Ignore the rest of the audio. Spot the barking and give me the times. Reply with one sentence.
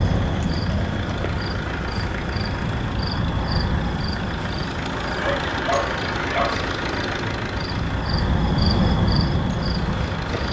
The barking can be heard from 5.2 to 6.7 s.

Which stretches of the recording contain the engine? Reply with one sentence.
You can hear the engine from 0.0 to 10.4 s.